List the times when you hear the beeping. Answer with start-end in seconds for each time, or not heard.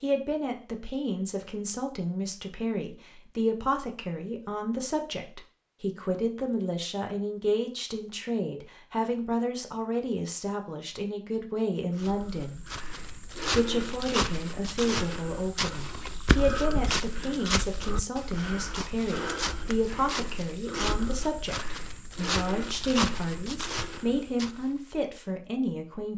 not heard.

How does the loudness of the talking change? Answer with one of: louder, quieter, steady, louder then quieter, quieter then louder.
steady.